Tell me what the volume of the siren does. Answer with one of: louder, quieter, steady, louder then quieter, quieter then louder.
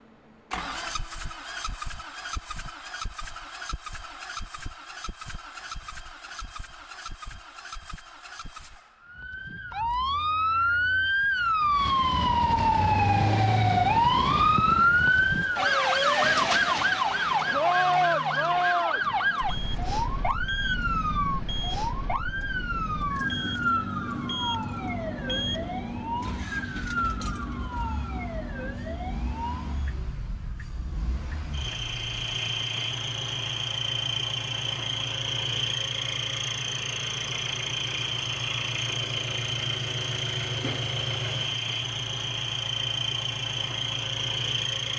quieter.